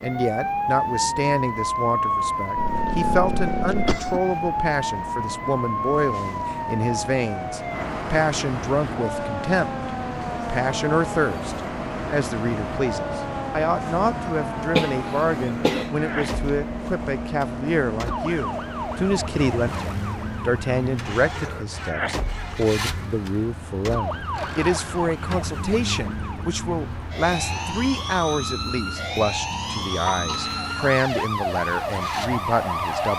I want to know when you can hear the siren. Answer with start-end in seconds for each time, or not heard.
0.0-33.1.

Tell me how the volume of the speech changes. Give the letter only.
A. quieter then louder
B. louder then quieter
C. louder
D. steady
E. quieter
D.